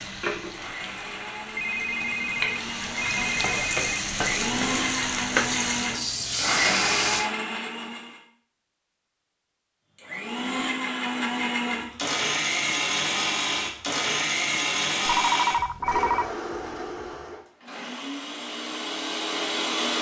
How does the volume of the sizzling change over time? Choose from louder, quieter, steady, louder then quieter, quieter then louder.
louder.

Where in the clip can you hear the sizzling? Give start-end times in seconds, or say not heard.
0.0-7.3.